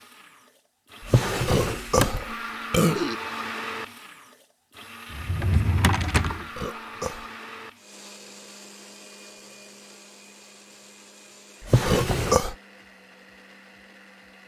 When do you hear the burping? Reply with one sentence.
You can hear the burping from 1.4 to 3.1 s, from 6.5 to 7.2 s and from 11.8 to 12.6 s.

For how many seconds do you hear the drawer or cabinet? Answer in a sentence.
The drawer or cabinet can be heard for 3 seconds in total.